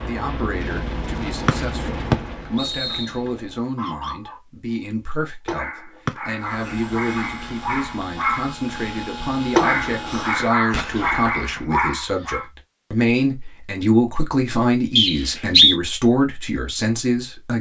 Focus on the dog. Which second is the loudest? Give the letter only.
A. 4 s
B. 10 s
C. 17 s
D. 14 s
B.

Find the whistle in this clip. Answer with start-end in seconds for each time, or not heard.
1.4-3.0, 6.0-6.8, 14.9-15.8.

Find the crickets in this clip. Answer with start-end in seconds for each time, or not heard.
not heard.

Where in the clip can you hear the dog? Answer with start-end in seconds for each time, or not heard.
2.4-4.4, 5.5-8.6, 9.6-12.4.